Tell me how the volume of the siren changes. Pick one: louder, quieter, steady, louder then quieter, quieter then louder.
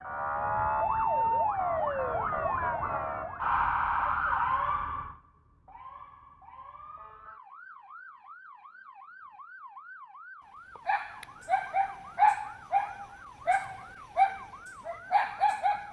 quieter.